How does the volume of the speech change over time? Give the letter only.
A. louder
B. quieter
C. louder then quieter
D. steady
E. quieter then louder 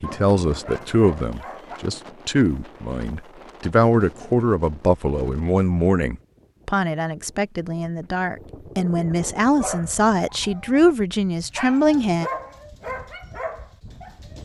D.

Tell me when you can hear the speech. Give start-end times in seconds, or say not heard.
0.0-12.3.